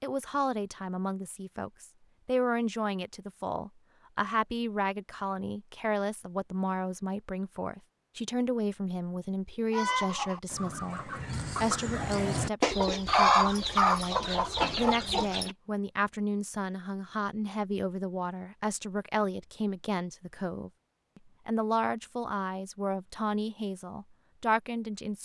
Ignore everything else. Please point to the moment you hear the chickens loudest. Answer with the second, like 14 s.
13 s.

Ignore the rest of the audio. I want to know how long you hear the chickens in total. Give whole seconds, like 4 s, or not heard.
6 s.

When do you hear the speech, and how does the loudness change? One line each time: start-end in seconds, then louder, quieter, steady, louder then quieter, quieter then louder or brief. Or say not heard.
0.0-25.2 steady.